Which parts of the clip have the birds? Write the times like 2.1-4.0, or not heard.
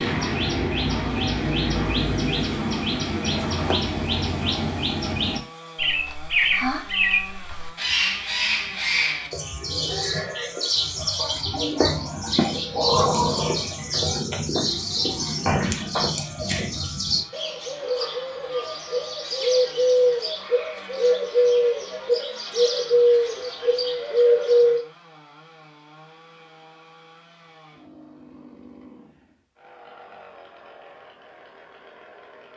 0.0-24.8.